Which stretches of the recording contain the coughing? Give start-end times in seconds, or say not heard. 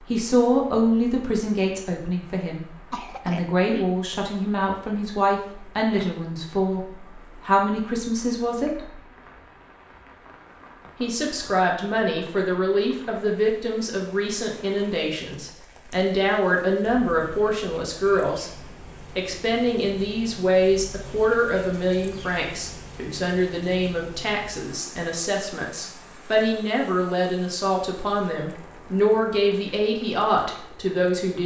2.9-3.9.